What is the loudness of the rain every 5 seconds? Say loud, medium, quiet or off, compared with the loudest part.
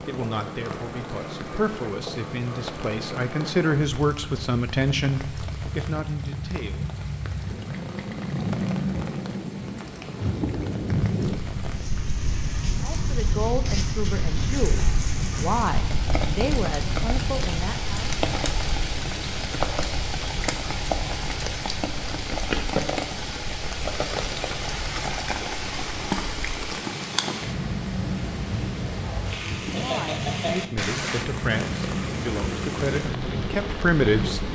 quiet, quiet, medium, loud, loud, loud, loud.